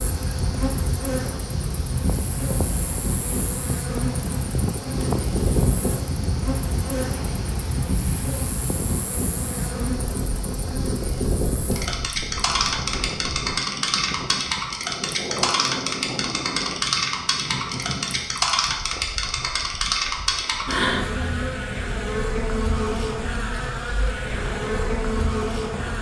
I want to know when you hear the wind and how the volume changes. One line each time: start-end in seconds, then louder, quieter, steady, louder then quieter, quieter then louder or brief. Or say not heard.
0.0-25.9 quieter.